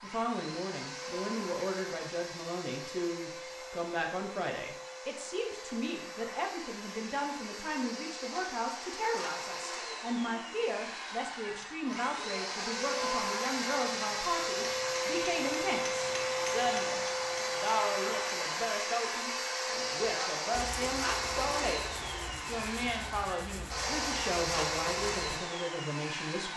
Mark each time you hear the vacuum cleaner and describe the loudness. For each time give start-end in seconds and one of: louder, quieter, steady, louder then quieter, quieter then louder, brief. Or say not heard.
0.0-26.5 louder.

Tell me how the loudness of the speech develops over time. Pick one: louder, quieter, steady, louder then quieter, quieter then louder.
steady.